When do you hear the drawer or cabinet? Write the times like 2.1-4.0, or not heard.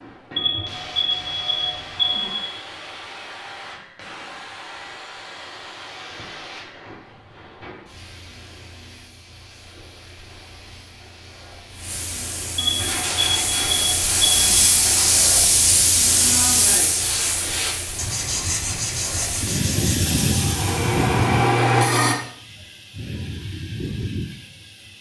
not heard.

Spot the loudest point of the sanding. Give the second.
22 s.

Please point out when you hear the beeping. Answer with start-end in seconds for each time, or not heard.
0.3-2.4, 12.6-14.6.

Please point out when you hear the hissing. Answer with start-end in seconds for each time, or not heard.
0.0-24.9.